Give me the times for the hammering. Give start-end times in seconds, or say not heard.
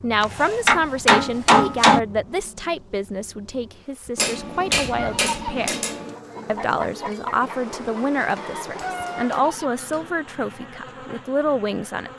0.2-2.0, 4.2-6.2, 8.3-10.1.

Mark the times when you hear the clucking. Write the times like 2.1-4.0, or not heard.
4.9-9.7.